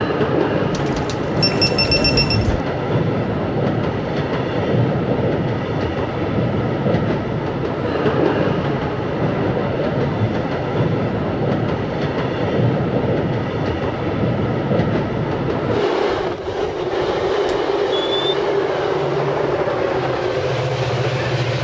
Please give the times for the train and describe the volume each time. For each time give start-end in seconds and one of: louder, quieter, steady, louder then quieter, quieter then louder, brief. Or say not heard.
0.0-21.6 steady.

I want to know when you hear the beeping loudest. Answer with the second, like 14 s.
2 s.